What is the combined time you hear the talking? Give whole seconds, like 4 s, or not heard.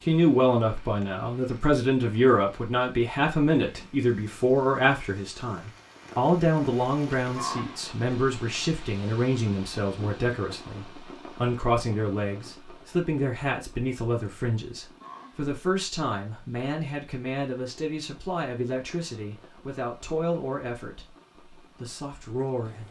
23 s.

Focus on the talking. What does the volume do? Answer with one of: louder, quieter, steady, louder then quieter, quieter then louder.
quieter.